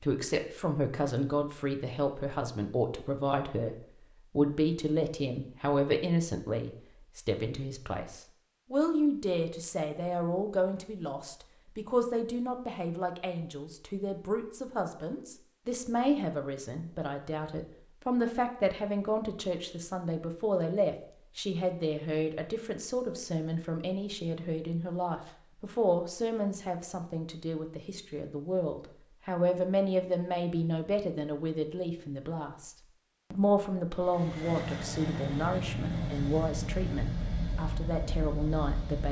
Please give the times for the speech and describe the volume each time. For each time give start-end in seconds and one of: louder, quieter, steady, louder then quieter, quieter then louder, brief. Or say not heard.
0.0-39.0 steady.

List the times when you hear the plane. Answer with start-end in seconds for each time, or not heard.
34.0-39.0.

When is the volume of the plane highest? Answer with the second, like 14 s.
36 s.